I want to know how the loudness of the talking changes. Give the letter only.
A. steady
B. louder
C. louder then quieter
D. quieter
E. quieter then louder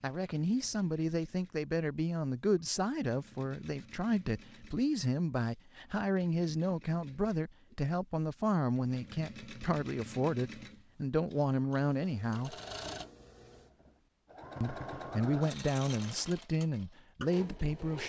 A.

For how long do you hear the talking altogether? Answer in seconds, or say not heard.
16 s.